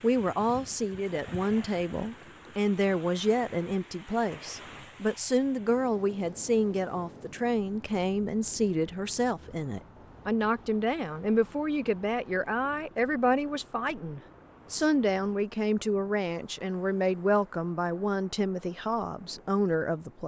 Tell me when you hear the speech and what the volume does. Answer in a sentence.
You can hear the speech from 0.0 to 20.2 s, at a steady volume.